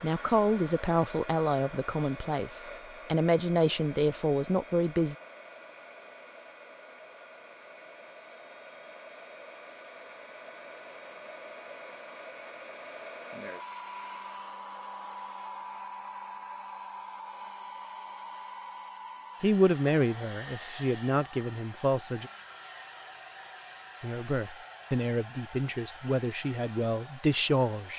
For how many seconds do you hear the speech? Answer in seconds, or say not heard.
12 s.